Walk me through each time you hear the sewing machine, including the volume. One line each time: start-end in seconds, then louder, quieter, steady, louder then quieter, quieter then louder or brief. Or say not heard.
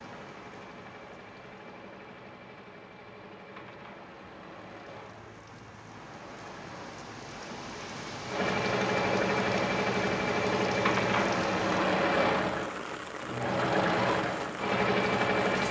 0.0-15.6 louder.